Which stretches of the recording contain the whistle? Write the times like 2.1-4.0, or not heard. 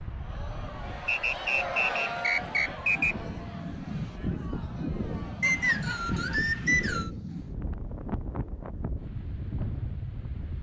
1.1-3.1, 5.4-7.1.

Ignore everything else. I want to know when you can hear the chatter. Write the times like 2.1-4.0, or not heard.
0.0-6.4.